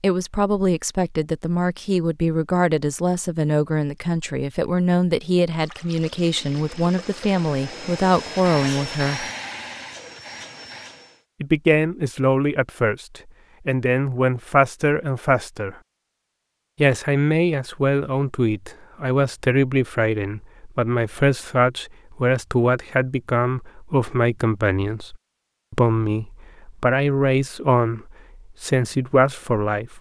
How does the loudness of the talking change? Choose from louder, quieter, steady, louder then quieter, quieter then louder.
steady.